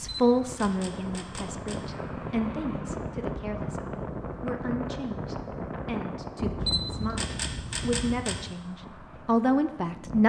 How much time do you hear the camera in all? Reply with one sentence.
The camera can be heard for 4 seconds in total.